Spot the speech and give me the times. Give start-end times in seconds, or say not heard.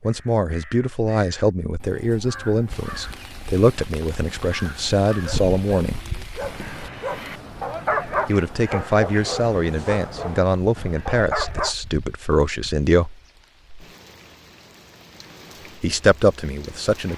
0.0-6.0, 8.2-13.2, 15.8-17.1.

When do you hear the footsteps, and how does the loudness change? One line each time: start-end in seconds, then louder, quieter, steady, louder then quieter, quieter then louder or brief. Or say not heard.
not heard.